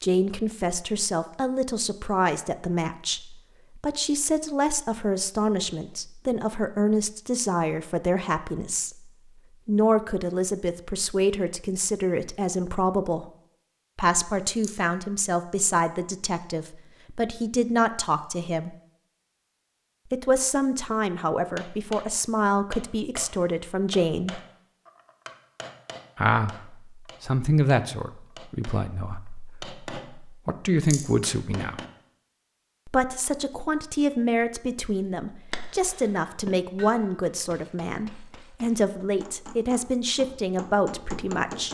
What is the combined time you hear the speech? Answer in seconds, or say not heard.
37 s.